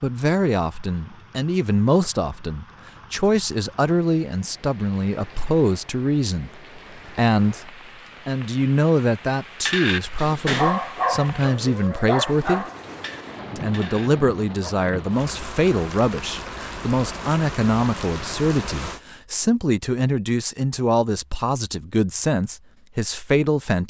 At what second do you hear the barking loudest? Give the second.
11 s.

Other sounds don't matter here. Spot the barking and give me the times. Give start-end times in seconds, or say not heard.
9.7-14.8.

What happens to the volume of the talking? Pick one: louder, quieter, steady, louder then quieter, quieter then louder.
steady.